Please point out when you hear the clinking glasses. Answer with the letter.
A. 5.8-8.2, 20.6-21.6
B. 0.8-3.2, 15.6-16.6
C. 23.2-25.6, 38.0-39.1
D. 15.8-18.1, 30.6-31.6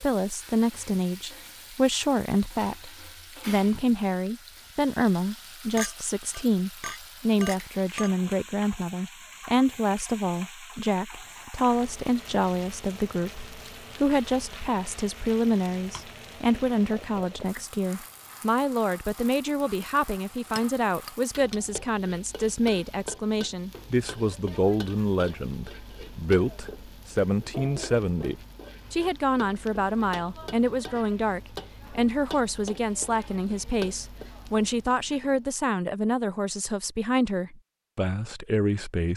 A.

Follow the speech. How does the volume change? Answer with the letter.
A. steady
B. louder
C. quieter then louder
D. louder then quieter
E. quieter
A.